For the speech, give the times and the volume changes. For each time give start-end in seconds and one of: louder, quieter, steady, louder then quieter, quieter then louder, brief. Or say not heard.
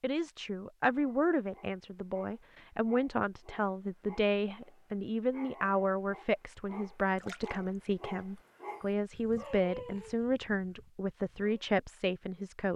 0.0-12.7 steady.